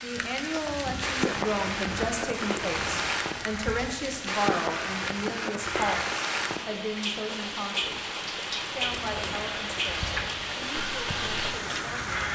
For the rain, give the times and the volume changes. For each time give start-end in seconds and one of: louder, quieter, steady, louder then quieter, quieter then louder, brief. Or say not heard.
0.0-12.2 steady.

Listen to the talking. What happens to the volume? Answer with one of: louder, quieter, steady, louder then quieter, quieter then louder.
quieter.